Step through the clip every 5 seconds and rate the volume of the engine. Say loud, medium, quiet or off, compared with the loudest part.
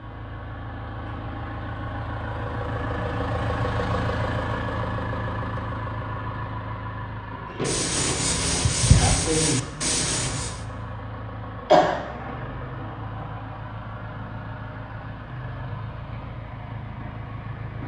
loud, loud, medium, medium.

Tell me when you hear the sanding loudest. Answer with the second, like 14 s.
9 s.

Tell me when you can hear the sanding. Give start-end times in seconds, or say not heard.
7.7-10.6.